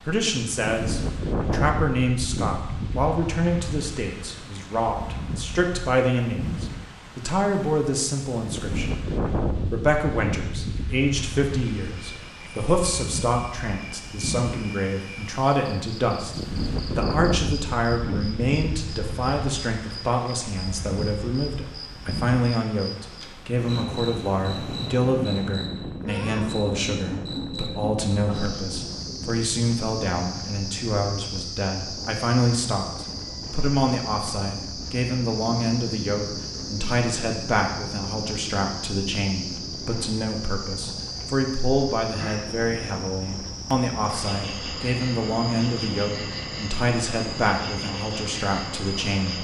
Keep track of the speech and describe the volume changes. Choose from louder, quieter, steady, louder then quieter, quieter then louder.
steady.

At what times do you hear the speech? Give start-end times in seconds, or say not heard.
0.0-49.3.